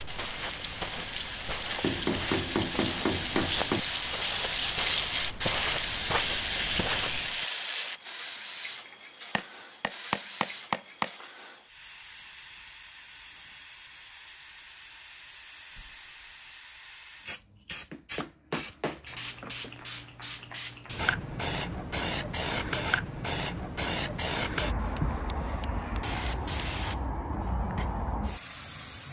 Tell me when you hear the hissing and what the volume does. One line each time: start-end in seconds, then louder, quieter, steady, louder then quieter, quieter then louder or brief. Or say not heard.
0.0-29.0 quieter then louder.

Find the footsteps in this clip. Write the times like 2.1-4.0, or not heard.
0.0-7.5.